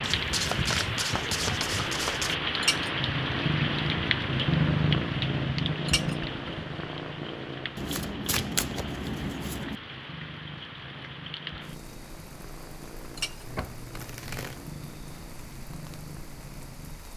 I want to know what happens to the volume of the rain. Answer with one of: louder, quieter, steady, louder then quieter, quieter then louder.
quieter.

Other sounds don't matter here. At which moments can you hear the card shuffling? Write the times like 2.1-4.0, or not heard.
0.0-2.4, 7.8-9.8, 13.4-14.6.